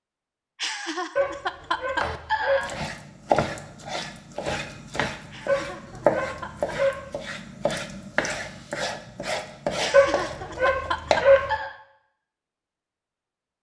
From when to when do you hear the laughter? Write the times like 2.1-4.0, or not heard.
0.6-2.7, 5.3-6.8, 9.8-11.8.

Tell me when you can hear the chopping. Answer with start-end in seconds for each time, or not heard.
2.0-11.3.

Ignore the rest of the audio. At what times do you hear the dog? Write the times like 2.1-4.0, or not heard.
1.1-2.8, 5.5-7.1, 9.9-11.6.